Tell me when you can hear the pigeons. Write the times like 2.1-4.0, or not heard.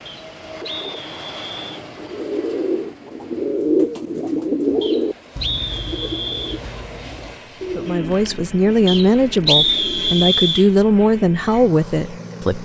1.6-10.2.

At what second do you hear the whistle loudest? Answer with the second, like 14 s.
10 s.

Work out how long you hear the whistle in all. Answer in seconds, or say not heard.
5 s.